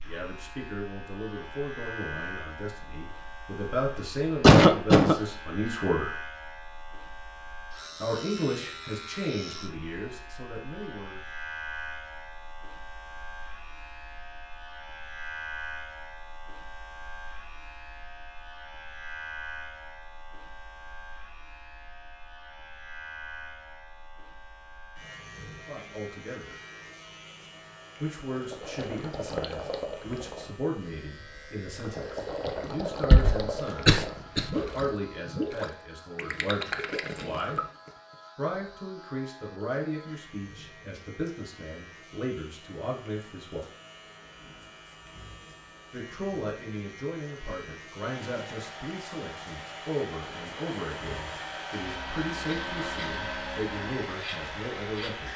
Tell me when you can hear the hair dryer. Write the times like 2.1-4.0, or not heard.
48.0-55.3.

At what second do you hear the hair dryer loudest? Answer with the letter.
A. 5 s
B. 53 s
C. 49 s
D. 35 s
B.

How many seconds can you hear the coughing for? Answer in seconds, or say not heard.
3 s.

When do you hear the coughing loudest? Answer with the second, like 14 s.
5 s.